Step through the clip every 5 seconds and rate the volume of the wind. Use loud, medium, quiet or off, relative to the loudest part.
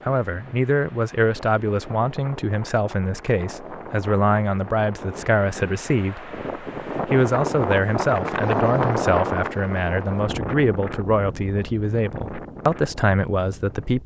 quiet, loud, medium.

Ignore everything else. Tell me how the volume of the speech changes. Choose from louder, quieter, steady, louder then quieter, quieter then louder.
steady.